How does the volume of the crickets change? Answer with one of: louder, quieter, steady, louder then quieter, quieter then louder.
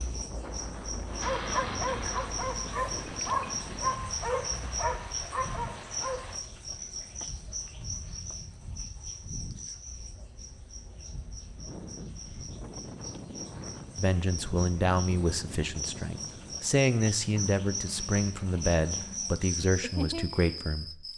quieter then louder.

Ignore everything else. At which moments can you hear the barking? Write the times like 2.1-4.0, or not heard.
1.1-6.4.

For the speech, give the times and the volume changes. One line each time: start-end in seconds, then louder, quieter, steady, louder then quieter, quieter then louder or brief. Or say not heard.
13.9-21.1 steady.